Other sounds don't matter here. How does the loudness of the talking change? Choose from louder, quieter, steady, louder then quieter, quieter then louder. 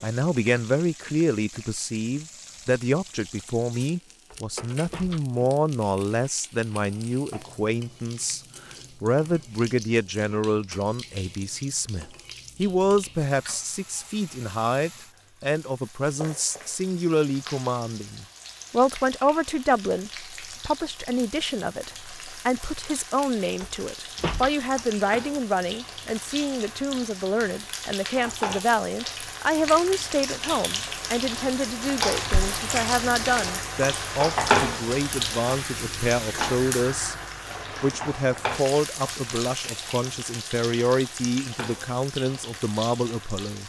steady.